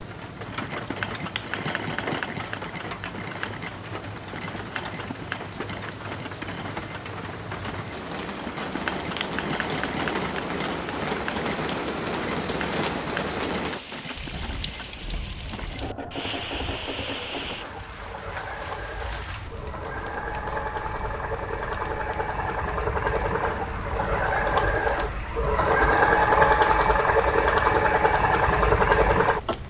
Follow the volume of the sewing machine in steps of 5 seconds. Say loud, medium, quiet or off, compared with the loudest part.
quiet, quiet, quiet, quiet, medium, loud.